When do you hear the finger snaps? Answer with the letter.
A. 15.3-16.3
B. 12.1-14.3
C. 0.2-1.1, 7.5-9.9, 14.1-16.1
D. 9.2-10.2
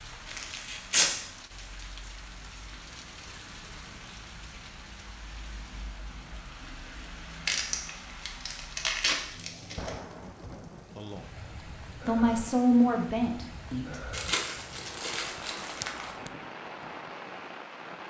A.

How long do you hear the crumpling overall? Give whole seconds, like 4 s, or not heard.
5 s.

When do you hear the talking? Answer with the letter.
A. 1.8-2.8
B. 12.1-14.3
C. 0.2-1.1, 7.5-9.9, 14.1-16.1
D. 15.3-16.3
B.